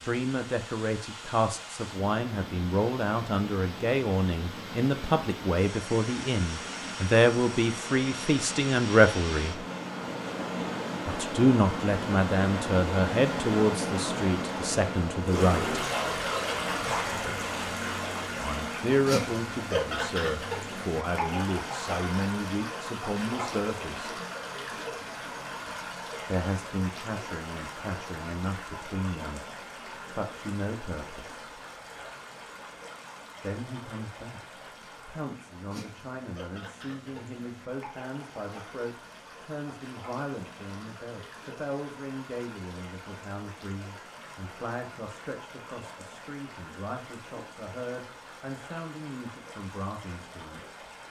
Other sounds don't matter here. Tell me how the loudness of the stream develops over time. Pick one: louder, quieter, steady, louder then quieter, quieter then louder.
louder then quieter.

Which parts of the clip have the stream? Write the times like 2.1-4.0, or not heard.
0.0-51.0.